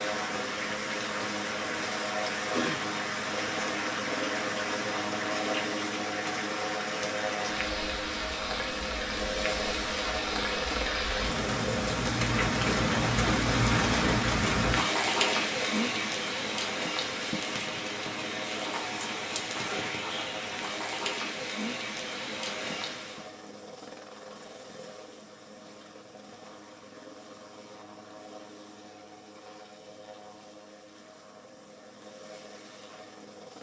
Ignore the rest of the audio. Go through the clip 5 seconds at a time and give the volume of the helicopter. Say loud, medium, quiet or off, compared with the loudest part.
loud, loud, loud, medium, medium, quiet, quiet.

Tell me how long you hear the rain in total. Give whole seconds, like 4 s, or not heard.
23 s.